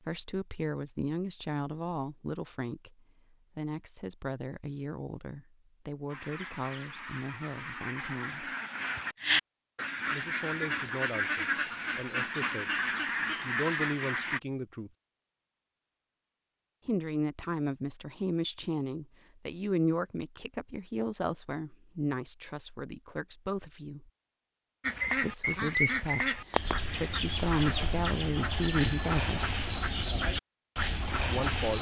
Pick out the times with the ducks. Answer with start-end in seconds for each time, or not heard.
6.0-14.4, 24.8-31.7.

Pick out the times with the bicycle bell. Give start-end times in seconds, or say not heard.
28.6-29.2.